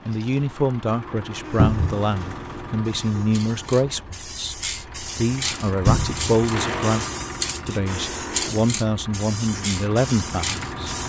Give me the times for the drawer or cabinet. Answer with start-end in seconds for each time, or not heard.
1.6-2.0, 5.8-6.2.